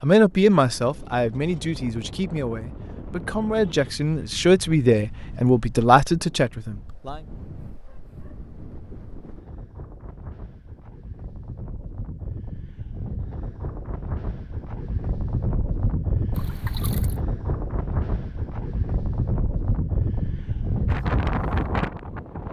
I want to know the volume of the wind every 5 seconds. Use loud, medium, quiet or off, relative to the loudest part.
quiet, quiet, medium, loud, loud.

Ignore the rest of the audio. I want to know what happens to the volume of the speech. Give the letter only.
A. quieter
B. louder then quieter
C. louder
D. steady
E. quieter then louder
E.